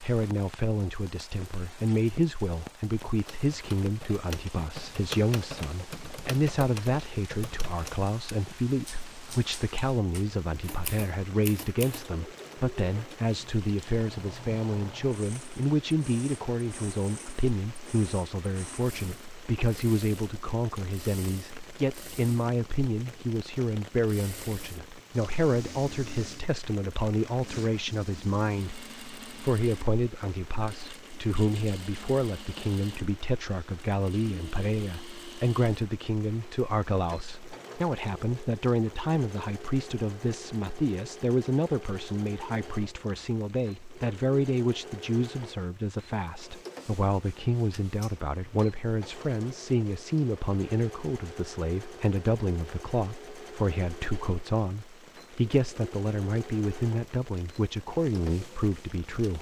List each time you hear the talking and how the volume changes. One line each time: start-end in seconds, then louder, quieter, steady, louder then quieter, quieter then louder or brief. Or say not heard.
0.0-59.3 steady.